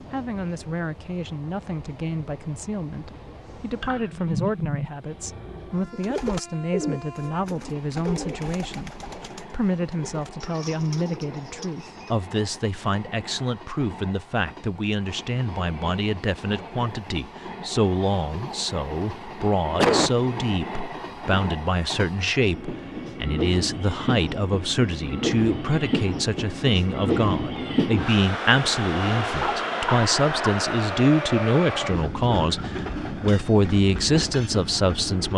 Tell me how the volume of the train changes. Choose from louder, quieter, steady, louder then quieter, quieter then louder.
louder.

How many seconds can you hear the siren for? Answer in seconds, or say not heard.
not heard.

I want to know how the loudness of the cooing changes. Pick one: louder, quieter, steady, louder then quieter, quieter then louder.
quieter.